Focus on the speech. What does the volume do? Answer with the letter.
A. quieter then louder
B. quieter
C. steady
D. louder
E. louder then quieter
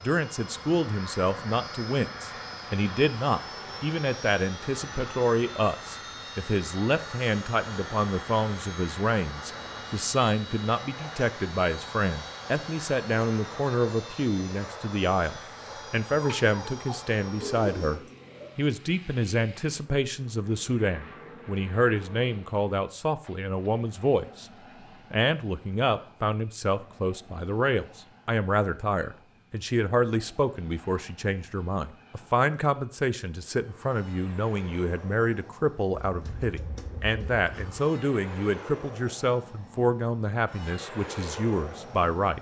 C.